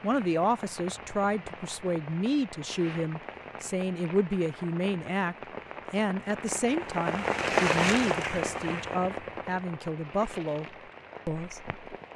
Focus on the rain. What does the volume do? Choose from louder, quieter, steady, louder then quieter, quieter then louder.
louder then quieter.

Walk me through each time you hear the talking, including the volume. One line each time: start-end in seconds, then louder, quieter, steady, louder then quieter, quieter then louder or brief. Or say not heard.
0.0-11.7 steady.